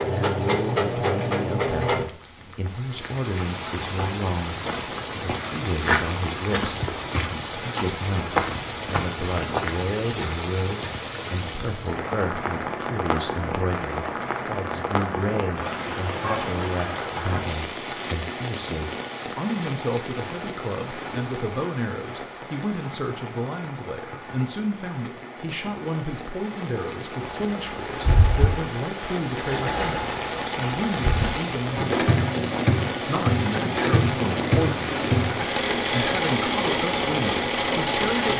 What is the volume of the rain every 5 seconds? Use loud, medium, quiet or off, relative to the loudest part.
medium, loud, loud, loud, medium, medium, loud, loud.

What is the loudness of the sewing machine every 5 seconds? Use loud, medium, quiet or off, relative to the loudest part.
loud, off, off, off, off, medium, loud, loud.